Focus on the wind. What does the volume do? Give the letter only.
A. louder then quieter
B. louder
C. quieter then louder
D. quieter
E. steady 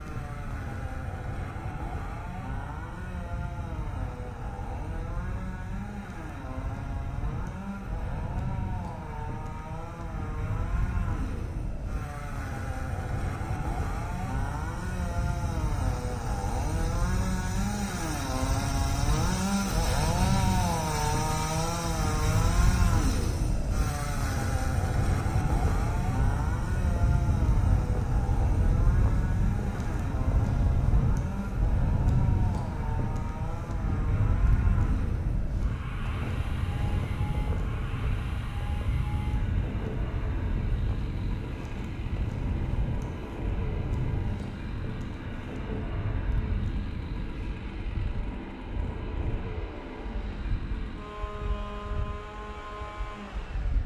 A.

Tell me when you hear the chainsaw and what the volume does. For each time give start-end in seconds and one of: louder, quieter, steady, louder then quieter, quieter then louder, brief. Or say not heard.
0.0-53.8 louder then quieter.